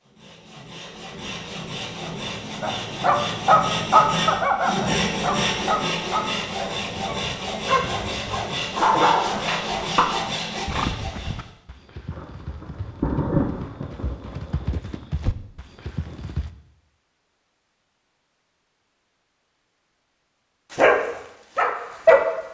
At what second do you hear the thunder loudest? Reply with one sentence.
The volume of the thunder peaks at 13 seconds.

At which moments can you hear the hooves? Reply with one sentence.
You can hear the hooves from 10.7 to 16.5 s.